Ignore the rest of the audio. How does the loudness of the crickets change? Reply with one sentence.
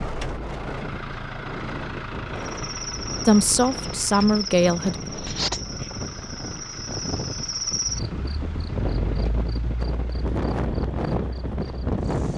The volume of the crickets goes down.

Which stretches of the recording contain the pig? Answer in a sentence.
You can't hear the pig here.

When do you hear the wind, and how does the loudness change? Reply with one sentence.
You can hear the wind from 0.0 to 12.3 s, getting louder.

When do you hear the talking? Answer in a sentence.
You can hear the talking from 3.2 to 5.1 s.